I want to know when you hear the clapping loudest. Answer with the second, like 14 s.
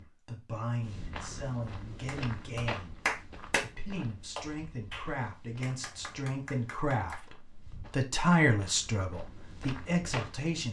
3 s.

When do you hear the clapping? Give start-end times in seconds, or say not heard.
2.0-3.6, 4.3-7.2.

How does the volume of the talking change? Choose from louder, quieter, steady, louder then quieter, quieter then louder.
louder.